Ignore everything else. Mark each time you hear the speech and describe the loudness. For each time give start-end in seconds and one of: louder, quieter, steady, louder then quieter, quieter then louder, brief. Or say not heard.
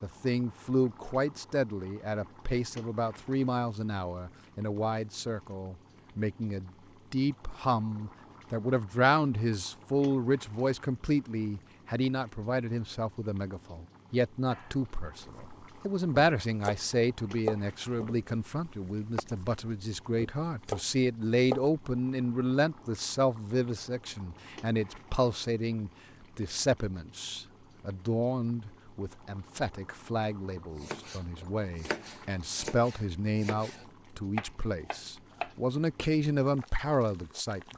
0.0-37.6 steady.